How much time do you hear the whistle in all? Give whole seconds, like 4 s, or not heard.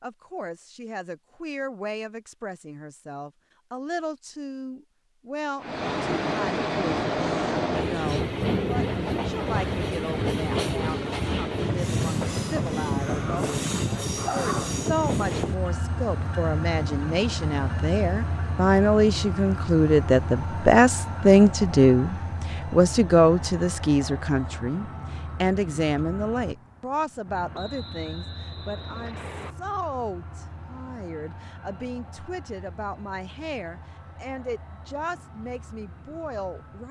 2 s.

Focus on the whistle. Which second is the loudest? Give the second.
29 s.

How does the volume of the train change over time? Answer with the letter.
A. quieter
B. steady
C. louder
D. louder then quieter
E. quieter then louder
A.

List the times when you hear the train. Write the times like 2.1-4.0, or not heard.
5.6-36.8.